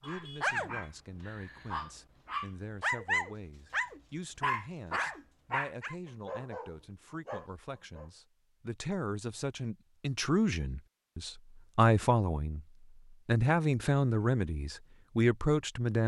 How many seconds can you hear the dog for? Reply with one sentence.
You can hear the dog for 8 seconds altogether.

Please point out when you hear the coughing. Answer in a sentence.
The coughing can't be heard in this clip.